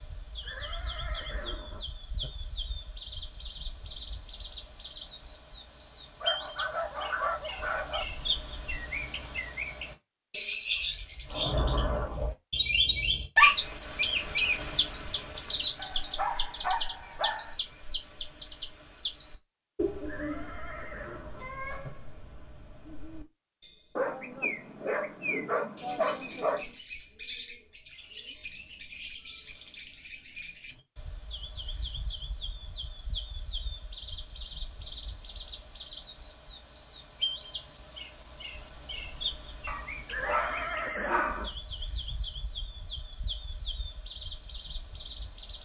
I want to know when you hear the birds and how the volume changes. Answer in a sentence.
You can hear the birds from 0.0 to 45.6 s, getting louder then quieter.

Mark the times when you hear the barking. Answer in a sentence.
The barking can be heard from 6.2 to 8.1 s, from 15.8 to 17.6 s, from 23.9 to 26.8 s and from 39.6 to 41.5 s.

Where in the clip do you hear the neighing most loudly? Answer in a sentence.
The loudest moment of the neighing is at 41 seconds.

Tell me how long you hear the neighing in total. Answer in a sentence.
The neighing can be heard for 5 seconds in total.